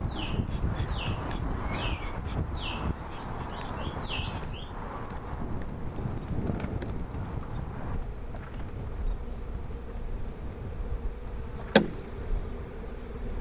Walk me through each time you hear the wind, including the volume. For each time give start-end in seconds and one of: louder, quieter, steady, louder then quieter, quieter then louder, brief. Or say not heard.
0.0-13.3 quieter.